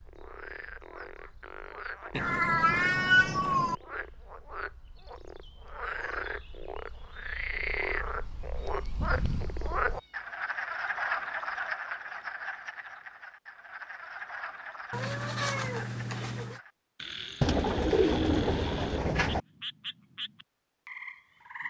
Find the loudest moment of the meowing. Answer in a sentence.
The volume of the meowing peaks at 3 seconds.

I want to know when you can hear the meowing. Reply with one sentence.
You can hear the meowing from 2.1 to 3.8 s, from 8.6 to 10.1 s and from 14.9 to 16.6 s.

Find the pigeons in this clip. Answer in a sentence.
The pigeons can be heard from 17.4 to 19.4 s.